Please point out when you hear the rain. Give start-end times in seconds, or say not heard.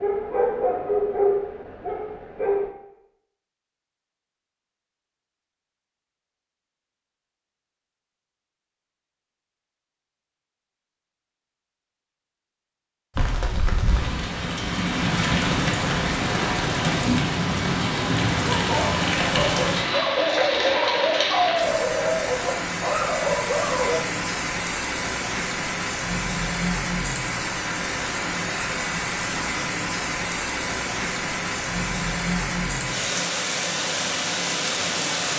13.2-35.3.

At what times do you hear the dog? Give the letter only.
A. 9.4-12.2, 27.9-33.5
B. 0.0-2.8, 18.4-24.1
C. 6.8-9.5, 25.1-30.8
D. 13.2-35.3
B.